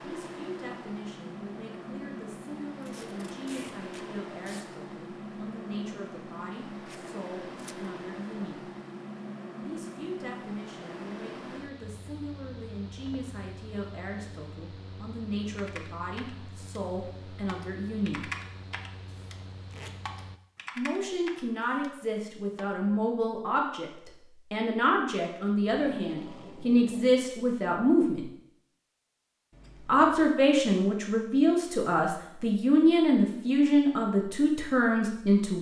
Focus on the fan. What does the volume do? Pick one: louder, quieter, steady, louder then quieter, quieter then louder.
quieter.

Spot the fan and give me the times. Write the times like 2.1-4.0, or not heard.
0.0-20.4.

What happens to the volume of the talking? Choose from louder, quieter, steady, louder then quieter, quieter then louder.
louder.